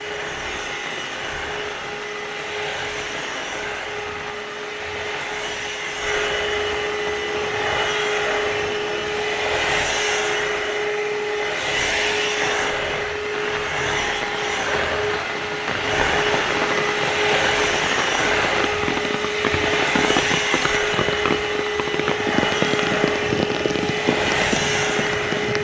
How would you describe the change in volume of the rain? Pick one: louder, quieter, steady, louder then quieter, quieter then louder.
louder.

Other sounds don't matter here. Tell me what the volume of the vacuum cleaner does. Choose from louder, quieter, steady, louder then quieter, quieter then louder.
louder.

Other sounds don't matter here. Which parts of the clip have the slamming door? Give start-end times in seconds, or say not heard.
not heard.